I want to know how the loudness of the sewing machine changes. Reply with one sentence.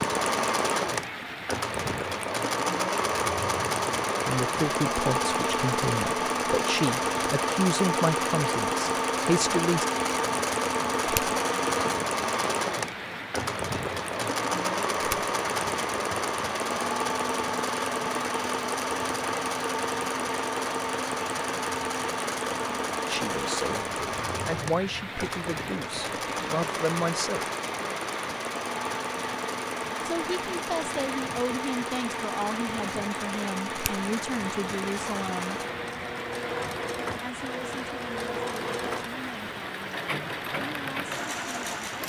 The volume of the sewing machine goes down.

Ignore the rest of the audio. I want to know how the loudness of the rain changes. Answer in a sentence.
The volume of the rain stays about the same.